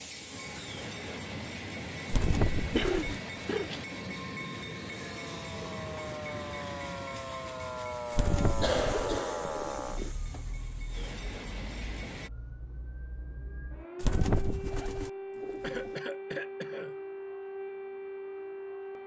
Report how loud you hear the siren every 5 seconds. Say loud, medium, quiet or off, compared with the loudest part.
off, loud, medium, loud.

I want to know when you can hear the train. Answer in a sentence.
The train can be heard from 0.0 to 12.3 s.